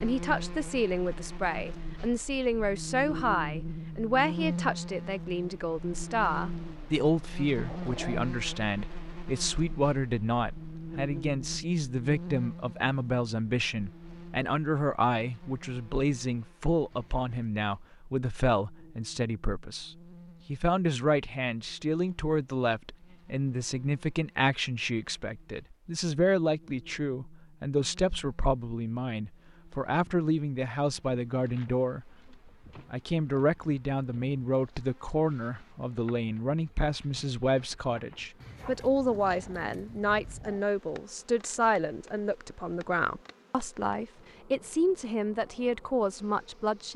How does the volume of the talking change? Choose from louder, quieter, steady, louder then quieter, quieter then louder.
steady.